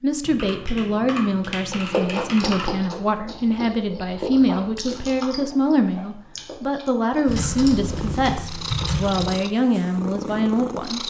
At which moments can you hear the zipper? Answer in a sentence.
You can't hear the zipper here.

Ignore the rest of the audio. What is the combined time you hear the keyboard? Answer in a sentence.
The keyboard can be heard for 5 seconds in total.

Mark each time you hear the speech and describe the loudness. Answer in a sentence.
You can hear the speech from 0.0 to 11.0 s, at a steady volume.